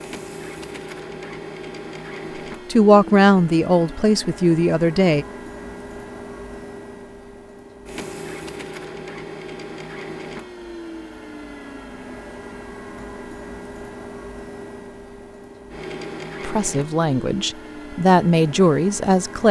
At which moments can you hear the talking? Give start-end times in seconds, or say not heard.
2.7-5.2, 16.4-19.4.